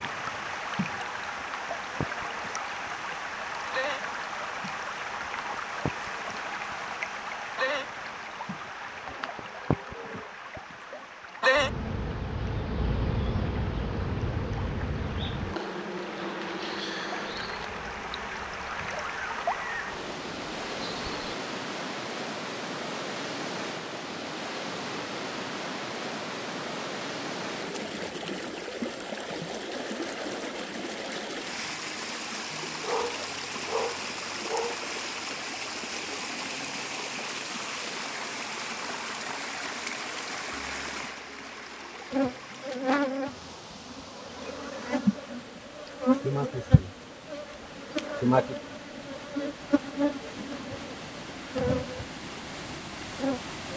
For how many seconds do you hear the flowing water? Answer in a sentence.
You can hear the flowing water for 54 seconds altogether.